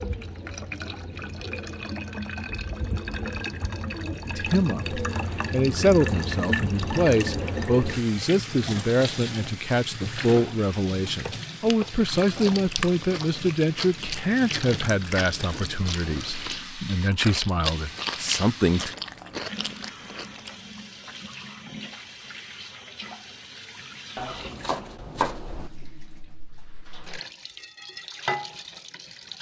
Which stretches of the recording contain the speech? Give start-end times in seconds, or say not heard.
4.2-18.9.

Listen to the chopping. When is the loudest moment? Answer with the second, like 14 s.
25 s.